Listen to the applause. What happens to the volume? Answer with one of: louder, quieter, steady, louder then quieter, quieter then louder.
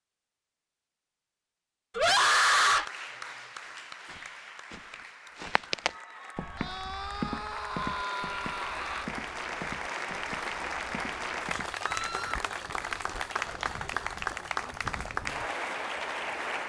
louder.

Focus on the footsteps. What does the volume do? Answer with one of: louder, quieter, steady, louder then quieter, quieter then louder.
quieter.